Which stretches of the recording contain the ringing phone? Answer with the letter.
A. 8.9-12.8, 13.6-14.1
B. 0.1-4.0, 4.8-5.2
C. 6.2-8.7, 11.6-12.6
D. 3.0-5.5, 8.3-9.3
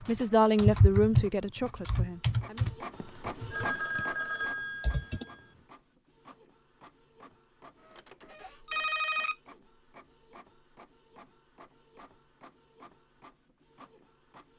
D.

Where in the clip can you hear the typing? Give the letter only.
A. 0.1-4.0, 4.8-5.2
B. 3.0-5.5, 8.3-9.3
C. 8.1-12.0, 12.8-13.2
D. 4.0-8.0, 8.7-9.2
A.